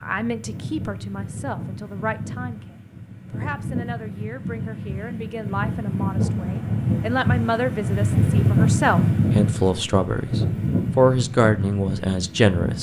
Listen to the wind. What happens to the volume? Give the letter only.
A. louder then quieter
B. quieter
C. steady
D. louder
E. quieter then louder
A.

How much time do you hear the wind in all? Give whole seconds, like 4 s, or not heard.
13 s.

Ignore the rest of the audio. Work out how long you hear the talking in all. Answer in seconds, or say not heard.
13 s.